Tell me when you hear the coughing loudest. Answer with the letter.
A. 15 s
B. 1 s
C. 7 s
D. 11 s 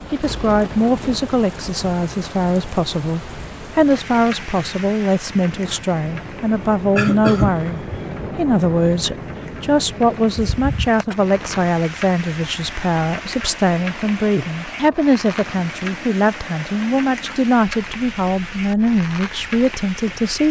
C.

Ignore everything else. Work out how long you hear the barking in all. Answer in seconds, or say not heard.
not heard.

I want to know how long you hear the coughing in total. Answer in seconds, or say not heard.
2 s.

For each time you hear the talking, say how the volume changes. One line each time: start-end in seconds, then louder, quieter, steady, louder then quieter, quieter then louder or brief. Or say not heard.
0.1-20.4 steady.